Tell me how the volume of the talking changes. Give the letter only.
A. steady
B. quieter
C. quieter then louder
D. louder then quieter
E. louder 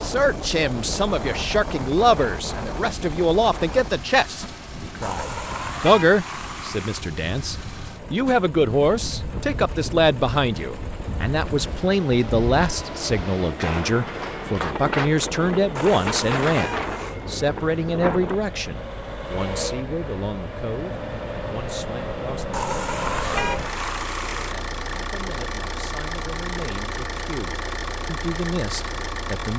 B.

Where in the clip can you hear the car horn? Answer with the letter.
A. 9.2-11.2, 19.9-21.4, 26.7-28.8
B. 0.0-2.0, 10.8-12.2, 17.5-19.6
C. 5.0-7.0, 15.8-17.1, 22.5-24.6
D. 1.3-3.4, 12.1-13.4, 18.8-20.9
C.